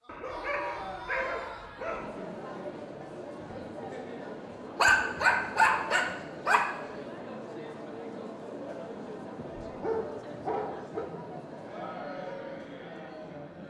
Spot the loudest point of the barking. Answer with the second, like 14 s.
5 s.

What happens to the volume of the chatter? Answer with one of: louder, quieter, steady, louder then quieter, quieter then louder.
steady.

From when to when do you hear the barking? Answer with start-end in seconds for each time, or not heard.
0.1-2.1, 4.8-6.8, 9.3-11.1.